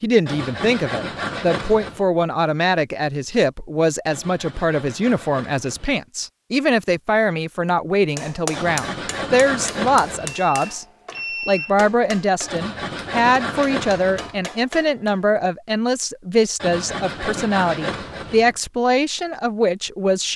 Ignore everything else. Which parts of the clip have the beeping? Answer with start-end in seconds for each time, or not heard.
10.2-11.8.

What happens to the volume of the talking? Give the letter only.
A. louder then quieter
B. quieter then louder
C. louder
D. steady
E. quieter
D.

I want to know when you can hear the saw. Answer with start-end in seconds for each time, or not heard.
0.2-2.0, 4.1-6.0, 8.5-10.4, 12.4-14.4, 16.6-18.6.